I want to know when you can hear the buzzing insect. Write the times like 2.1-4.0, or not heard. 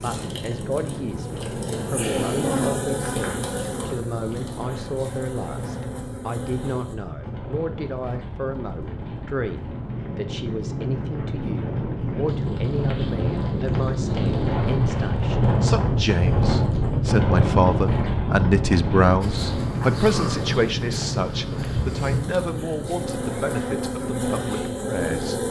0.0-7.0, 19.2-25.4.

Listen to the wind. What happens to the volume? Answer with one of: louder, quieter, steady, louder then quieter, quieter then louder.
louder then quieter.